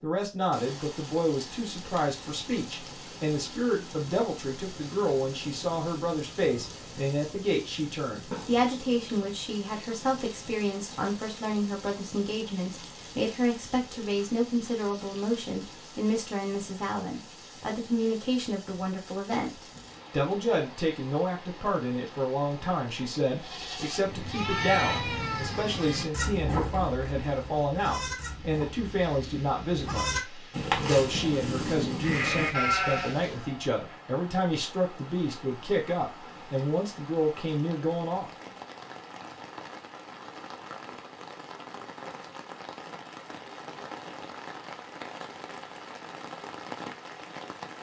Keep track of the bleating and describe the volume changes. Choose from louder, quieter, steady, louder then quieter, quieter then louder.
quieter then louder.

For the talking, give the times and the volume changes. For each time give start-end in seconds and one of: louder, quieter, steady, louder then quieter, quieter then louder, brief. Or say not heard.
0.0-38.3 steady.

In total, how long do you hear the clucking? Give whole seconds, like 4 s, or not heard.
not heard.